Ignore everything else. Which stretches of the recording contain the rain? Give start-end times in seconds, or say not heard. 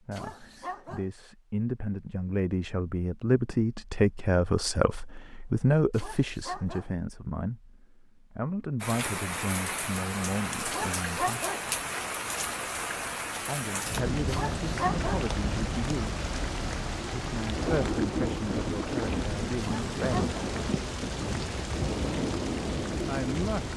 8.8-23.7.